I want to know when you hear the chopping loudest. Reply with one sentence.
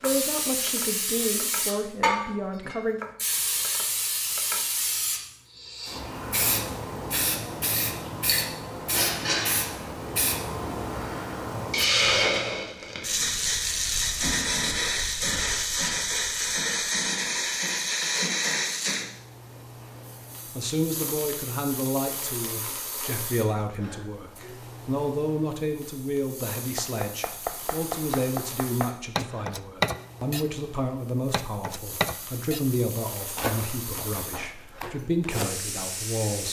The volume of the chopping peaks at 30 seconds.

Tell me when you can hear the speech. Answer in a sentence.
You can hear the speech from 0.0 to 3.0 s and from 20.6 to 36.4 s.